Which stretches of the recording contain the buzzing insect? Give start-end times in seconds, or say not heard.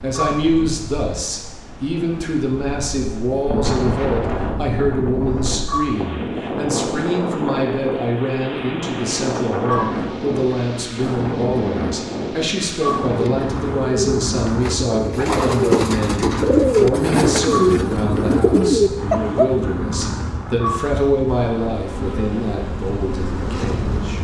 21.2-24.1.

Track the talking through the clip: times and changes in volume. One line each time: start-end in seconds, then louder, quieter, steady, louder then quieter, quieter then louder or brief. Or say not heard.
0.0-24.1 steady.